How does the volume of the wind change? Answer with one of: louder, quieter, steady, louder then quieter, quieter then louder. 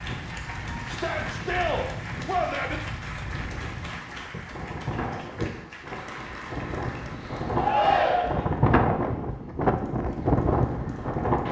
louder.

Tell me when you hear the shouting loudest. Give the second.
8 s.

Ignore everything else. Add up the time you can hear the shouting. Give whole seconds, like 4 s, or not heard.
3 s.